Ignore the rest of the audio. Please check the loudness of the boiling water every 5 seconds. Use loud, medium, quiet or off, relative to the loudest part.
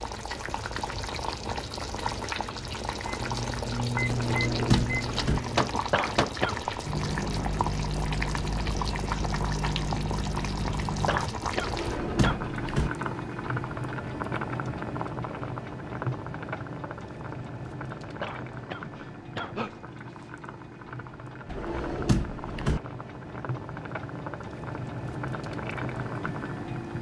loud, loud, loud, loud, medium, loud.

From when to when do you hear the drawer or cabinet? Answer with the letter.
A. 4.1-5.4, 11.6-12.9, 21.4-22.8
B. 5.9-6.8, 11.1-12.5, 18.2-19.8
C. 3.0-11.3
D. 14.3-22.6
A.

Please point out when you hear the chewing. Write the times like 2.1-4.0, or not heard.
not heard.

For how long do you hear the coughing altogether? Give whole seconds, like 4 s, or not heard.
4 s.